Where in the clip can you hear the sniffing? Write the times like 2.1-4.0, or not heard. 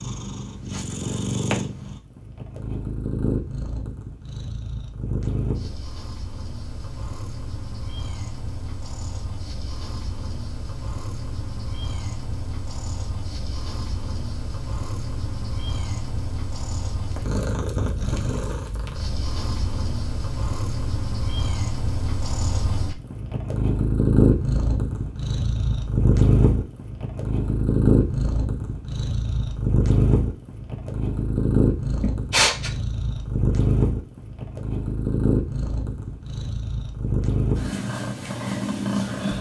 32.0-32.7.